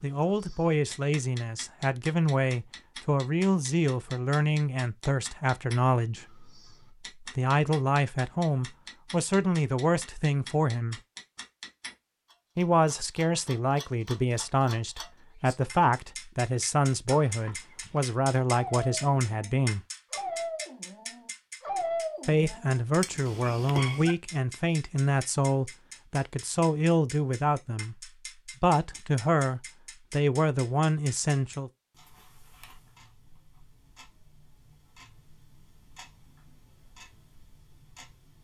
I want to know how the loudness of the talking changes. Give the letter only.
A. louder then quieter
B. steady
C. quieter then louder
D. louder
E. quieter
B.